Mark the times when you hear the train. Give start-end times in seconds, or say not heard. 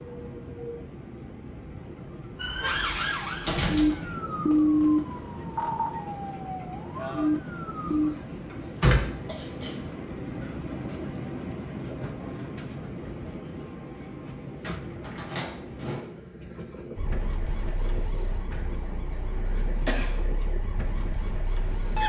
0.0-22.0.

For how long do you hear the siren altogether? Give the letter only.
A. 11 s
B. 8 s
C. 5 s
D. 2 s
A.